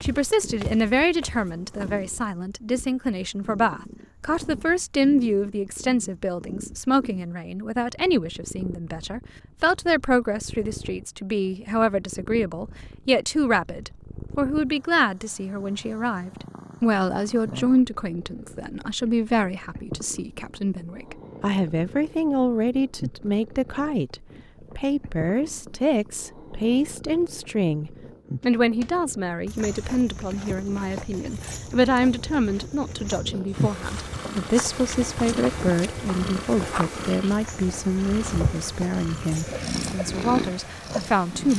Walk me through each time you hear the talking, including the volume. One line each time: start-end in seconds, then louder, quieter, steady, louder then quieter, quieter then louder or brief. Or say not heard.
0.0-41.5 steady.